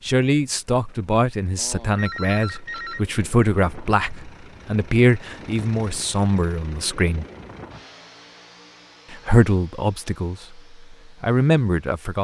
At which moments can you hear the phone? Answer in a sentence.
You can hear the phone from 1.6 to 3.0 s.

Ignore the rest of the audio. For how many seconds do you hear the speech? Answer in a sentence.
You can hear the speech for 10 seconds altogether.